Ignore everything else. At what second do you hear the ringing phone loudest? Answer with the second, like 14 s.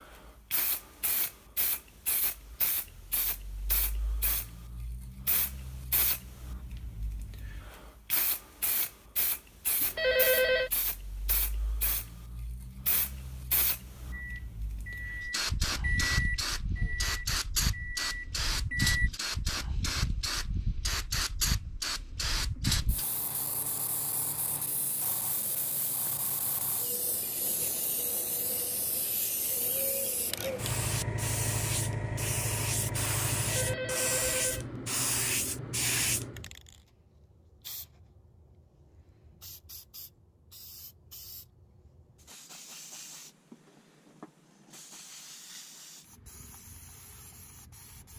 10 s.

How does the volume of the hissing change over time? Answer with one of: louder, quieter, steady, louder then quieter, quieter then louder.
louder then quieter.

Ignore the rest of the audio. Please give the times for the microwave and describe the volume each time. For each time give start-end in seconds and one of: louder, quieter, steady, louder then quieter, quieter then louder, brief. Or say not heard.
14.1-19.1 louder then quieter.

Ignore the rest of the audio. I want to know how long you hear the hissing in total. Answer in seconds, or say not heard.
48 s.